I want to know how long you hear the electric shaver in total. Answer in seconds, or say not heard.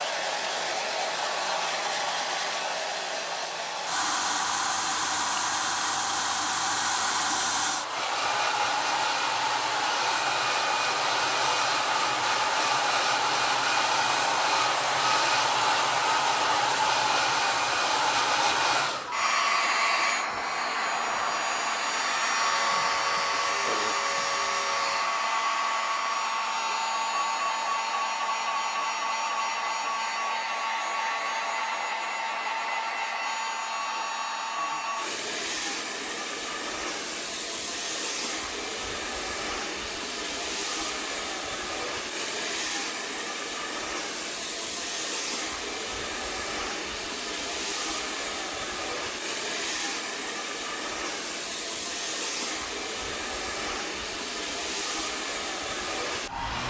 3 s.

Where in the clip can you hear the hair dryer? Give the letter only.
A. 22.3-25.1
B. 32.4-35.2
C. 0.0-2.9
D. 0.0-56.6
D.